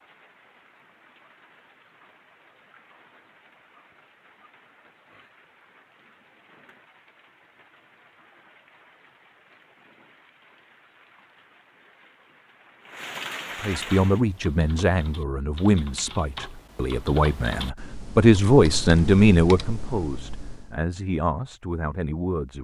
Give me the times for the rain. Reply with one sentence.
The rain can be heard from 0.0 to 14.2 s.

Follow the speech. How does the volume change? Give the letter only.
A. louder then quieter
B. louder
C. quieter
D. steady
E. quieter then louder
A.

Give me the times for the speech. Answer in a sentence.
The speech can be heard from 13.6 to 22.5 s.